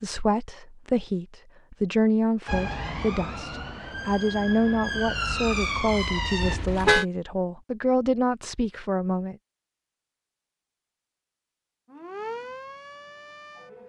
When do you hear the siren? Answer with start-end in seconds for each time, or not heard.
2.5-6.6, 11.8-13.8.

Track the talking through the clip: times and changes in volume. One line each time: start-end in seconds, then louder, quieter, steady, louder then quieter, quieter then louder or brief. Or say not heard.
0.0-9.3 steady.